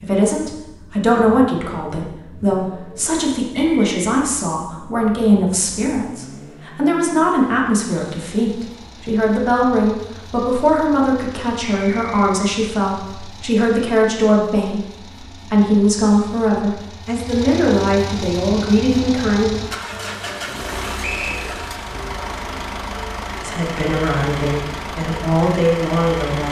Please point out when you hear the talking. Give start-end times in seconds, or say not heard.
0.0-19.6, 23.4-26.4.